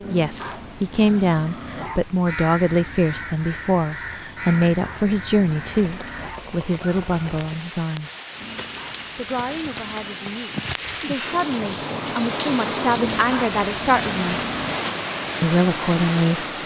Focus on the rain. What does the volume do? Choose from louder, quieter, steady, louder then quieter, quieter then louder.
louder.